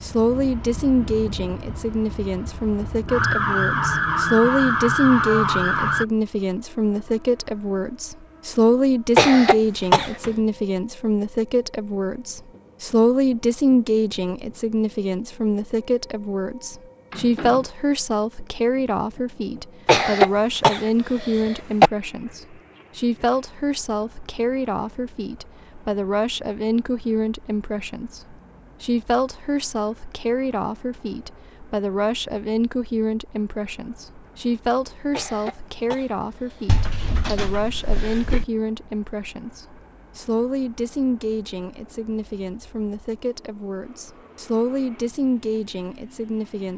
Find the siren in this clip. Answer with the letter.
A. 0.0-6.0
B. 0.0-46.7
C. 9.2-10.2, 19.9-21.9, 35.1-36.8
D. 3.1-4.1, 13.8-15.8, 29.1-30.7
A.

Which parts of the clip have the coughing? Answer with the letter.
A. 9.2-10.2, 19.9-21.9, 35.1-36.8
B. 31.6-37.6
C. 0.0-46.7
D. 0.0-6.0
A.